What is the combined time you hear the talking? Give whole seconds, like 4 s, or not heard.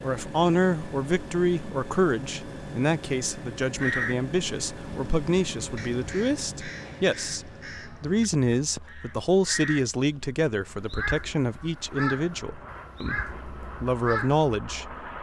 15 s.